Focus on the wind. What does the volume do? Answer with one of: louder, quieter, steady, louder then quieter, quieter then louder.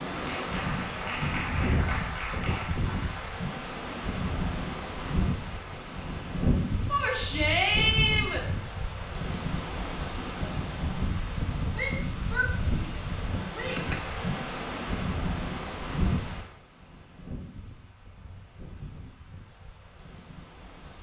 quieter.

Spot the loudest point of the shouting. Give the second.
8 s.